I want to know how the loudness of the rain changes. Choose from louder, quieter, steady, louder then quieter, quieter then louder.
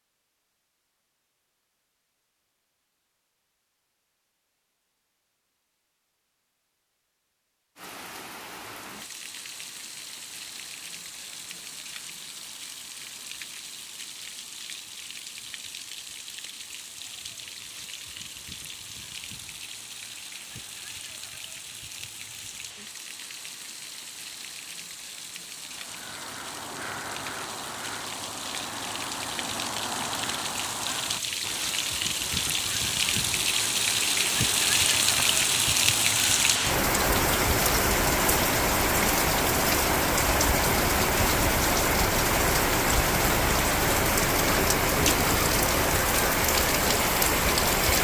louder.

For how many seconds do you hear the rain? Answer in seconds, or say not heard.
40 s.